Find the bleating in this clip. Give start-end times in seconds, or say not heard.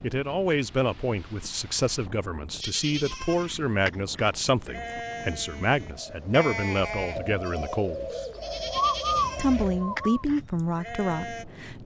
2.5-11.4.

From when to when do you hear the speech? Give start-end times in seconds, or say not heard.
0.0-8.1, 9.3-11.7.